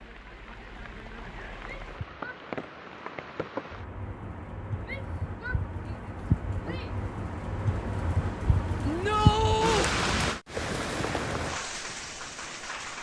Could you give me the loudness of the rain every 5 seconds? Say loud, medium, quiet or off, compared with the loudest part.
medium, loud, loud.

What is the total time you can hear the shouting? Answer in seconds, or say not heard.
4 s.